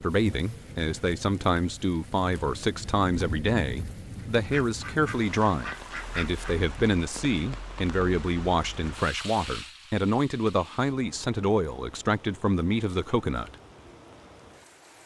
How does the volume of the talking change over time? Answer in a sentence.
The loudness of the talking stays about the same.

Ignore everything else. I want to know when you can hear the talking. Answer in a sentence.
You can hear the talking from 0.0 to 13.6 s.